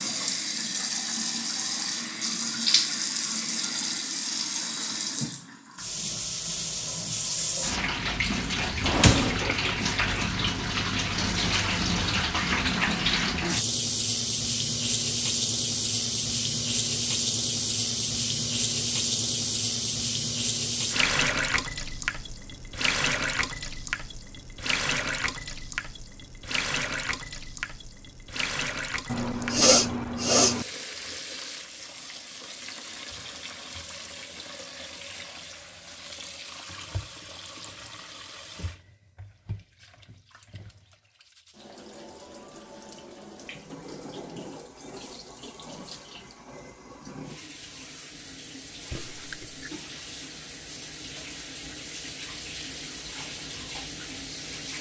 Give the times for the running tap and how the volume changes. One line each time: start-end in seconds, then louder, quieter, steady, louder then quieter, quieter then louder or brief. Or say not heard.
0.0-54.7 quieter.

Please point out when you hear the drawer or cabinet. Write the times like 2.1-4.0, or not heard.
8.8-9.4.